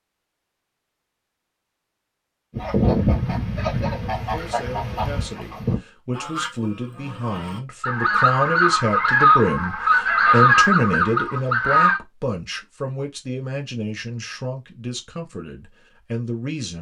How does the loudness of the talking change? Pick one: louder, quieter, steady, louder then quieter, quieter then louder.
louder then quieter.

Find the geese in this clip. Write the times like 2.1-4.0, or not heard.
2.5-12.0.